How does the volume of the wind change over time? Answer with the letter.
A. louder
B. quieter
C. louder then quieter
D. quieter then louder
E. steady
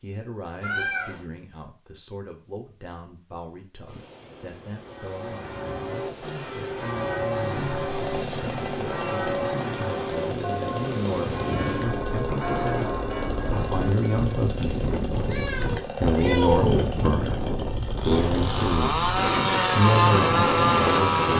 A.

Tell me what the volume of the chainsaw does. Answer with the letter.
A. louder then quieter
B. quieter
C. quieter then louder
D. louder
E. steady
D.